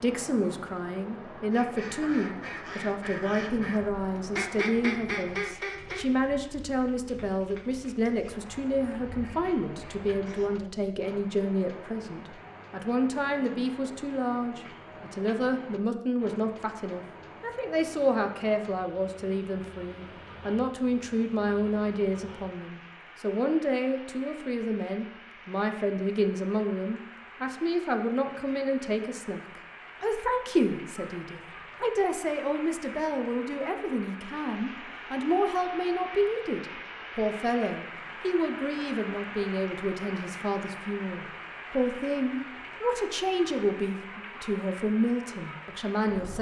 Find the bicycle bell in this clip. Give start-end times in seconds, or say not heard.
not heard.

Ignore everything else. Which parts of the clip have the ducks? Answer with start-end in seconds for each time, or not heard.
1.5-10.7.